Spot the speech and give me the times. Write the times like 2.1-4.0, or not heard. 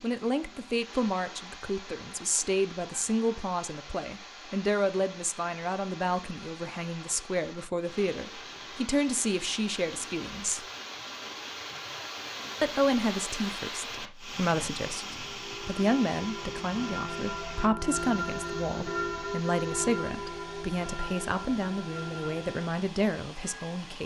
0.0-10.7, 12.6-24.0.